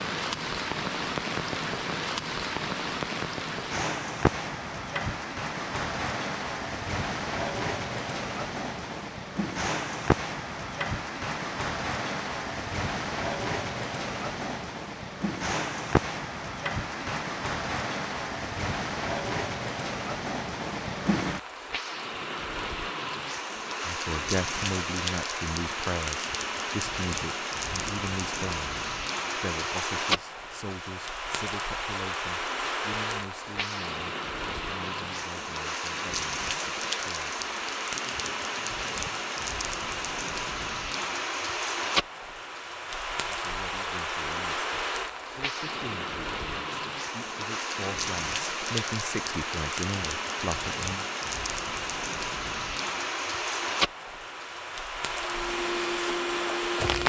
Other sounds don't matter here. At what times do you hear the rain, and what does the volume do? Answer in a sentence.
The rain can be heard from 0.0 to 57.0 s, at a steady volume.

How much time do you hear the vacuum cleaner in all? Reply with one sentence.
The vacuum cleaner can be heard for 2 seconds in total.